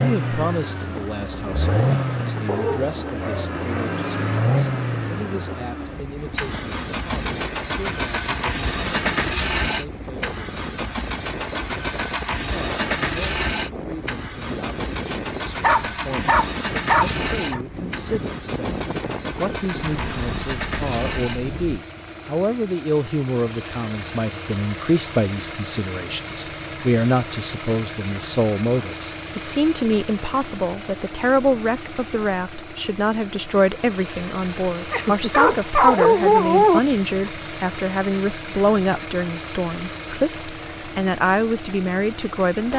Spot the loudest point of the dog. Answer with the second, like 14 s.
36 s.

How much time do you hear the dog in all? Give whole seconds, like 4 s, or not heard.
5 s.